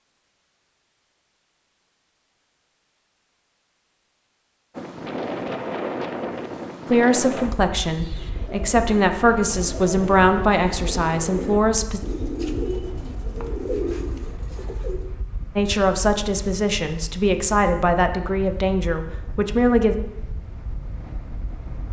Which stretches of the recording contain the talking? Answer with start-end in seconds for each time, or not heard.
6.9-12.0, 15.6-19.9.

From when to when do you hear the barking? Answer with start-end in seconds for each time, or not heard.
not heard.